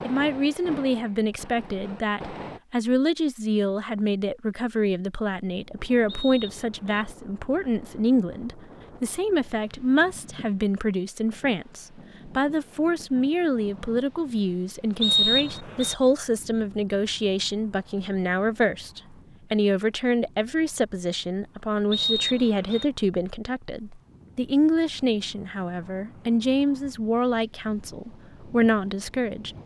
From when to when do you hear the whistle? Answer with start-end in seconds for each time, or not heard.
6.0-7.0, 15.0-15.9, 21.9-22.9.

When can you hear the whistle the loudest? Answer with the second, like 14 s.
15 s.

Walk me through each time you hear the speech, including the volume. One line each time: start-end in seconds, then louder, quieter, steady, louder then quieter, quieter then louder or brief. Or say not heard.
0.0-29.6 steady.